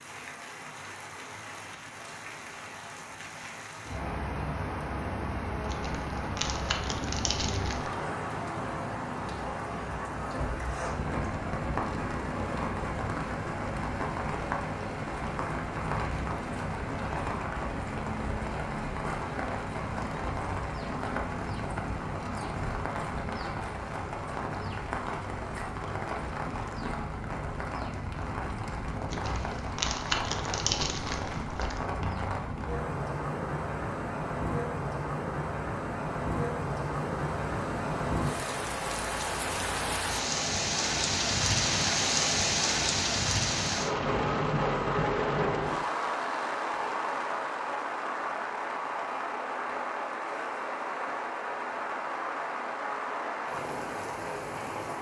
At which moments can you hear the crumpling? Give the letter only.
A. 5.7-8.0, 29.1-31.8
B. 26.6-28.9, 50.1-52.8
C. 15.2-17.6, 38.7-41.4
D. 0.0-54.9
A.